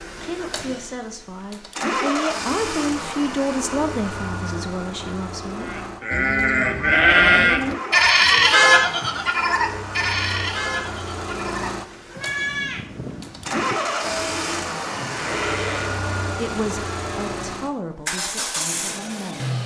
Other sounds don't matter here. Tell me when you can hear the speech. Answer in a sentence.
You can hear the speech from 0.1 to 5.7 s and from 16.2 to 19.6 s.